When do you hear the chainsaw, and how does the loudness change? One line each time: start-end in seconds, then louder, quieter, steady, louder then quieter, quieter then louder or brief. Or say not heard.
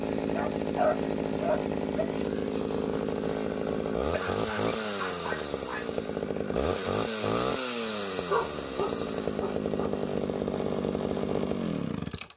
0.0-12.3 steady.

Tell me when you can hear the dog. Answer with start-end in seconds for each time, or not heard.
0.3-2.0, 4.1-5.8, 8.2-9.9.